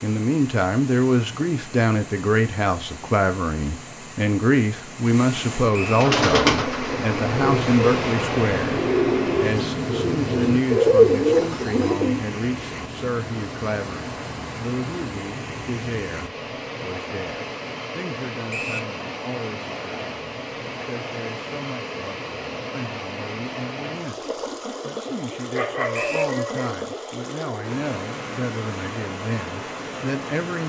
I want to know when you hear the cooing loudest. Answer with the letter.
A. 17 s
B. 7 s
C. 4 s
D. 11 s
D.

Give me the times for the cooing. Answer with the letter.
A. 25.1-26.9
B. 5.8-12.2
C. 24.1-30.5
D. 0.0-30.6
B.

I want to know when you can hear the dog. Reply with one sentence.
The dog can be heard from 25.1 to 26.9 s.